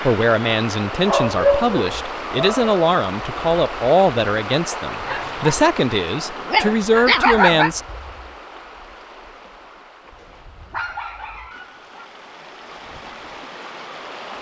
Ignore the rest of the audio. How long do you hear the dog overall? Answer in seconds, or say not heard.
5 s.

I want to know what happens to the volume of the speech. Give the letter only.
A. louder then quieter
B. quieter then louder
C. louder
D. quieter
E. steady
E.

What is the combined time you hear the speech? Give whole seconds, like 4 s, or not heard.
8 s.